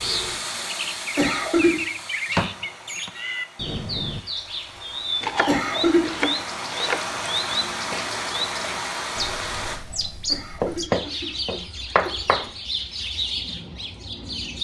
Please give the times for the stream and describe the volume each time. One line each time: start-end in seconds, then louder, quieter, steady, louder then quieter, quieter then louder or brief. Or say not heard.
0.0-9.8 quieter then louder.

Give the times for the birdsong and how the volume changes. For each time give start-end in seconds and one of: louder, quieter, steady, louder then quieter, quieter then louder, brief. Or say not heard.
0.0-14.6 steady.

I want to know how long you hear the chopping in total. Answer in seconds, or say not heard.
5 s.